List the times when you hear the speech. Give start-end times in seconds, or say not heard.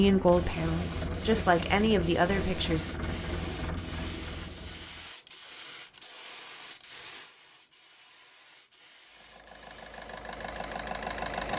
0.0-2.9.